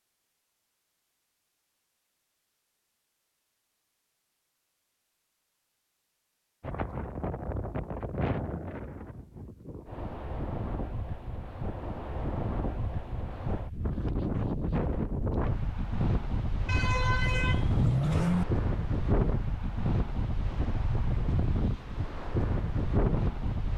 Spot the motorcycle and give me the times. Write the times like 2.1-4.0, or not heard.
not heard.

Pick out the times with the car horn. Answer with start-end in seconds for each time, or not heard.
16.6-18.4.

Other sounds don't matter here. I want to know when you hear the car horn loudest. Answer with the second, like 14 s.
18 s.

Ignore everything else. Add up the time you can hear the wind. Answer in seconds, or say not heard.
17 s.